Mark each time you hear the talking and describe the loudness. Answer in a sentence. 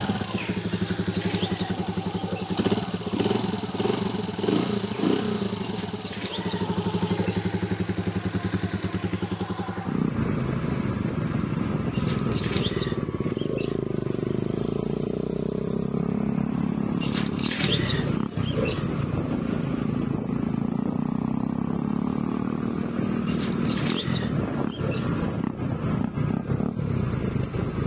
You can't hear the talking here.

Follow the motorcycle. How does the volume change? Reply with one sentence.
The volume of the motorcycle stays about the same.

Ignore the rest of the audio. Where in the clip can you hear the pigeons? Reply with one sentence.
You can hear the pigeons from 0.7 to 2.5 s, from 5.6 to 7.5 s, from 11.9 to 13.8 s, from 17.0 to 18.9 s and from 23.2 to 25.1 s.